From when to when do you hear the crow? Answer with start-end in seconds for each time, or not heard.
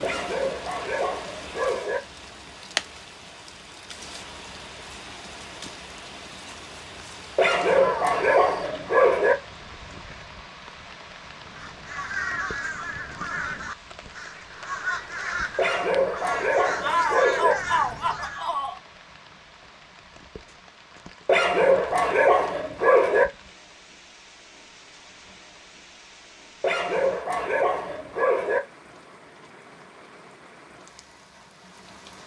11.3-18.5.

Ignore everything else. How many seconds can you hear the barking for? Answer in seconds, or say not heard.
10 s.